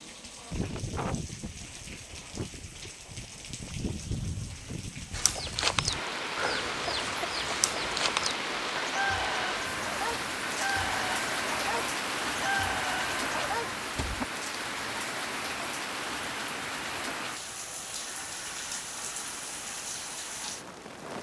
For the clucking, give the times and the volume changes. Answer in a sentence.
The clucking can be heard from 5.1 to 14.2 s, at a steady volume.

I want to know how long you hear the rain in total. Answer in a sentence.
The rain can be heard for 21 seconds in total.